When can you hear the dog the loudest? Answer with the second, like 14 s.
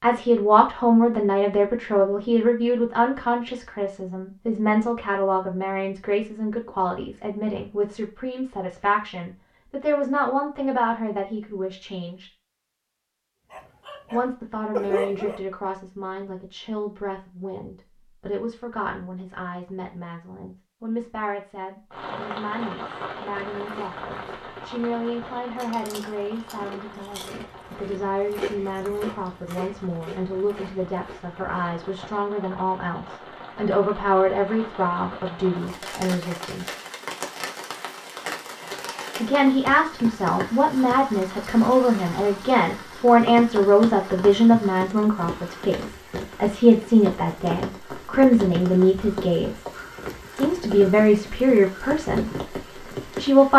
15 s.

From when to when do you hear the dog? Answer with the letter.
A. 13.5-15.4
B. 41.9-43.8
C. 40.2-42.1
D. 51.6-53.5
A.